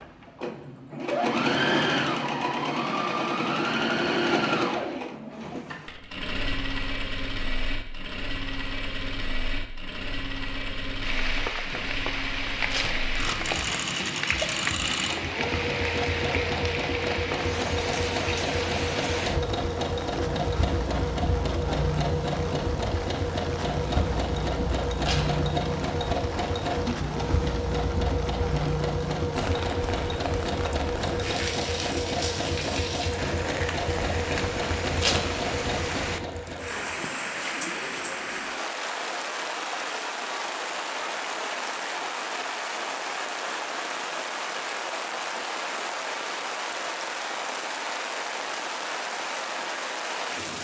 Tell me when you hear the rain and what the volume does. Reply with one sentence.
You can hear the rain from 10.9 to 50.5 s, at a steady volume.